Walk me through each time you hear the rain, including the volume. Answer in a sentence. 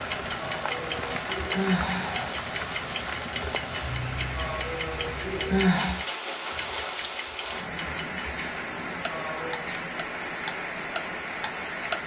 The rain can be heard from 0.0 to 12.0 s, at a steady volume.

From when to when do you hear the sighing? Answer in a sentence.
You can hear the sighing from 0.4 to 2.3 s, from 4.3 to 6.0 s and from 9.1 to 9.7 s.